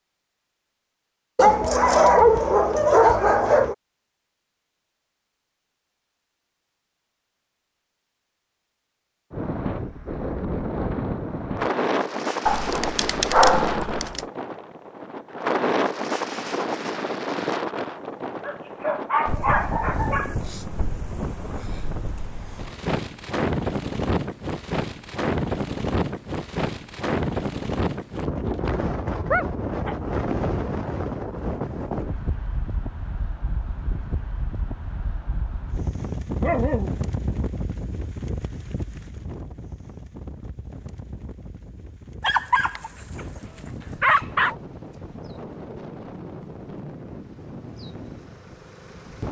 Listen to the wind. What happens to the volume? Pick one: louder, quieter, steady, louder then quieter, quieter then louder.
quieter.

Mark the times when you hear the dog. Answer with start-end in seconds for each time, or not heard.
1.4-3.8, 12.4-14.2, 18.4-20.4, 28.4-29.9, 36.4-37.0, 42.2-44.5.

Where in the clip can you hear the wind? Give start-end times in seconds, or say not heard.
9.3-49.2.